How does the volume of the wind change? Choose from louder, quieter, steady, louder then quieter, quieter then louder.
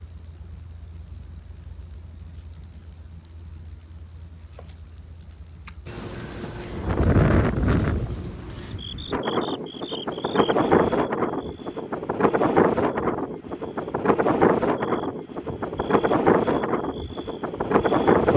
steady.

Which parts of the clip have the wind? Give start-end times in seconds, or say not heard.
6.7-18.3.